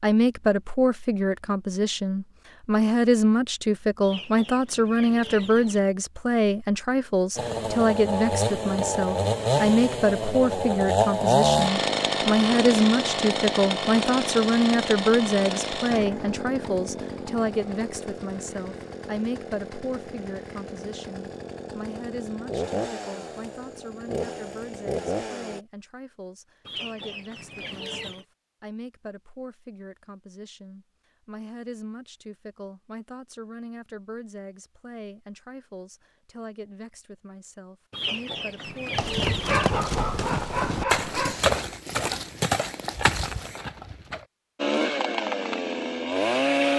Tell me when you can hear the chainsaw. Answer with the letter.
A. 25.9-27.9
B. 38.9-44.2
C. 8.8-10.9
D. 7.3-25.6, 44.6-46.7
D.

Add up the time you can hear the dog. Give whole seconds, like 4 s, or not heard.
2 s.